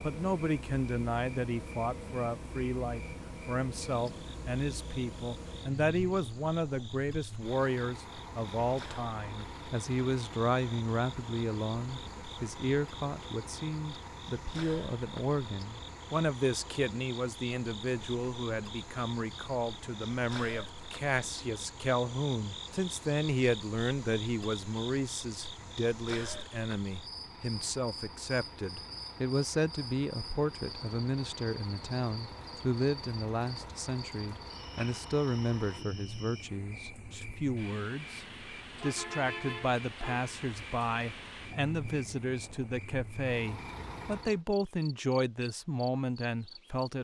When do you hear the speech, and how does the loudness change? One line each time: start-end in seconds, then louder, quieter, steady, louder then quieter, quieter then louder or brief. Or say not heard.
0.0-46.9 steady.